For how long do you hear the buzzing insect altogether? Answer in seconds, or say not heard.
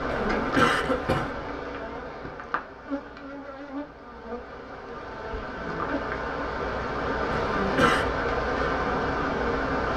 10 s.